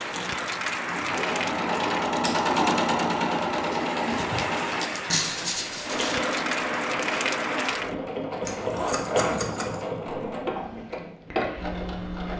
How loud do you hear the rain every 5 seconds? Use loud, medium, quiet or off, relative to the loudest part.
loud, loud, off.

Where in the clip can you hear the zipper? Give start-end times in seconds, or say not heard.
8.5-9.4.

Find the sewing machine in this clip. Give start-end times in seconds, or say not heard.
0.0-12.3.